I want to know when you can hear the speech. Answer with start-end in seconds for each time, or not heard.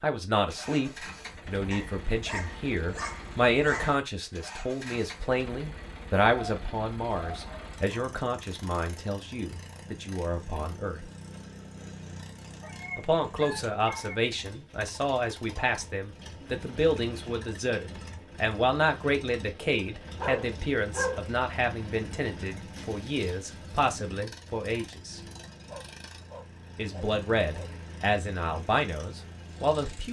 0.0-11.1, 12.9-25.2, 26.8-30.0.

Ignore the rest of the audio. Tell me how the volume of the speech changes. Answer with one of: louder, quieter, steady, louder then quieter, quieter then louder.
steady.